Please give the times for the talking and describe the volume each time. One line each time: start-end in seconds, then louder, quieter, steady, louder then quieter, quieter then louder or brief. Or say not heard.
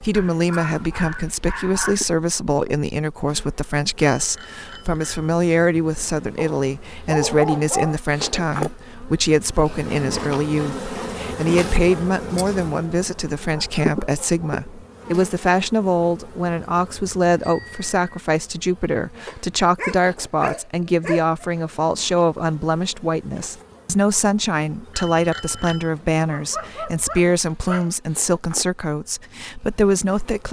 0.0-30.4 steady.